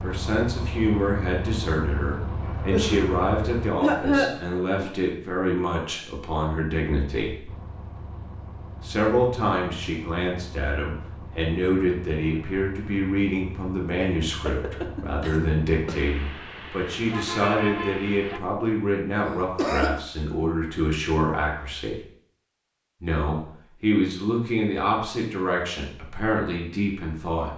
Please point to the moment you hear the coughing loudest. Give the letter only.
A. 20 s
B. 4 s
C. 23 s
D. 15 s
B.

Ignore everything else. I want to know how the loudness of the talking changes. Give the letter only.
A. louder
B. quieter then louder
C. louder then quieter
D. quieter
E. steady
E.